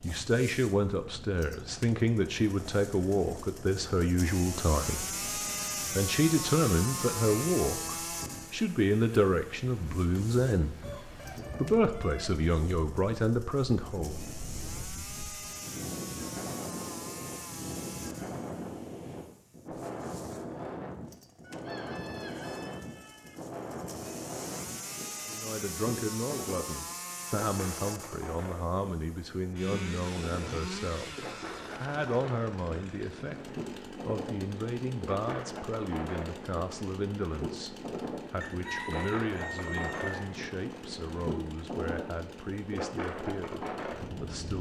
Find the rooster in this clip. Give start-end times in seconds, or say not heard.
10.8-12.4, 21.4-23.4, 38.4-40.3.